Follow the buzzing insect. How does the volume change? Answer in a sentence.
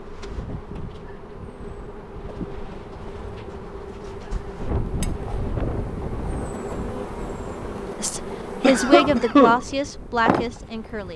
The volume of the buzzing insect goes up.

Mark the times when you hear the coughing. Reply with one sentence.
The coughing can be heard from 8.6 to 9.7 s.